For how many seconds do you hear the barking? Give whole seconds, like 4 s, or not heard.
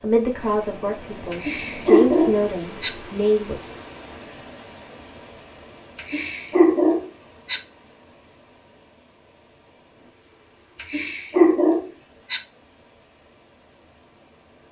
5 s.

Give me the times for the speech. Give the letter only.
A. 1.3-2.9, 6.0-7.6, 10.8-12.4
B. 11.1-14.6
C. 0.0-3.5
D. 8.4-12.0
C.